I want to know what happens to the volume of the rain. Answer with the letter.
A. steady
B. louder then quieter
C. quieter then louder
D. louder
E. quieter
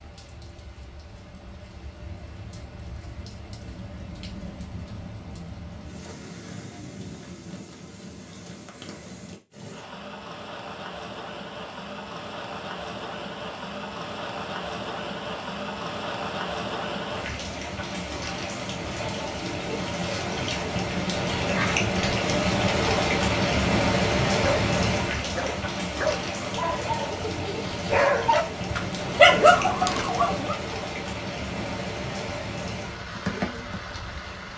B.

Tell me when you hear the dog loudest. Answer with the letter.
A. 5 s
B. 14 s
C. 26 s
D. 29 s
D.